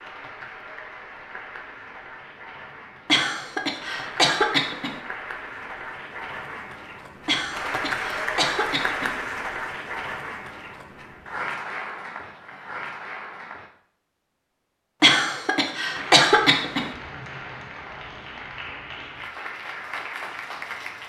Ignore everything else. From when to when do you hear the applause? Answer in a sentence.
The applause can be heard from 0.0 to 13.7 s and from 15.9 to 21.0 s.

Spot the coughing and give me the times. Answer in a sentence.
You can hear the coughing from 3.0 to 5.0 s, from 7.2 to 9.2 s and from 15.0 to 16.9 s.